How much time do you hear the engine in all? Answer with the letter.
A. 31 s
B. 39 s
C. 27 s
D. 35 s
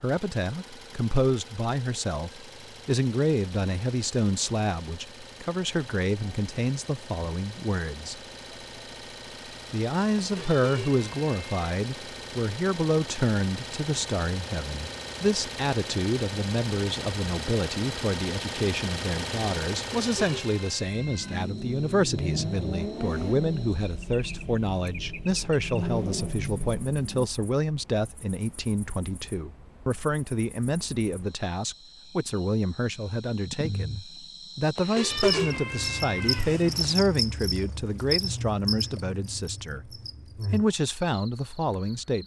C.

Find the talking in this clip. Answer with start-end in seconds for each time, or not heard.
0.0-8.2, 9.7-39.9, 40.5-42.2.